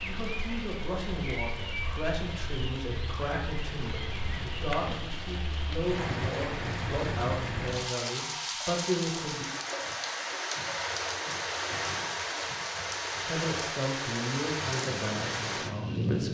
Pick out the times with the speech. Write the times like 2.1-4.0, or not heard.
0.0-9.4, 13.2-16.2.